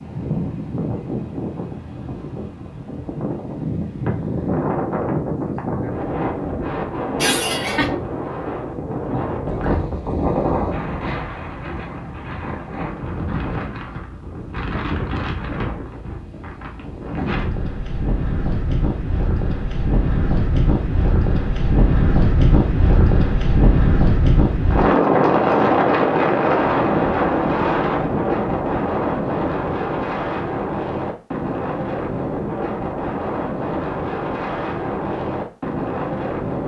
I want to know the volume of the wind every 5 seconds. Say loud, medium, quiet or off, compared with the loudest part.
medium, medium, medium, medium, loud, loud, medium, medium.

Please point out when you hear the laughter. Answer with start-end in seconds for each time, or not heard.
7.2-7.9.